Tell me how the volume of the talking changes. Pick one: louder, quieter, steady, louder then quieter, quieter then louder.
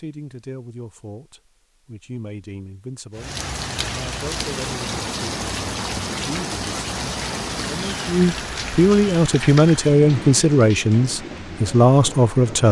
louder.